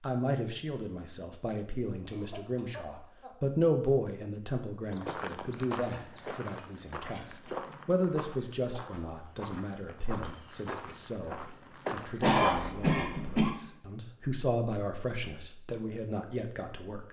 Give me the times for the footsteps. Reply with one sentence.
The footsteps can be heard from 4.8 to 12.8 s.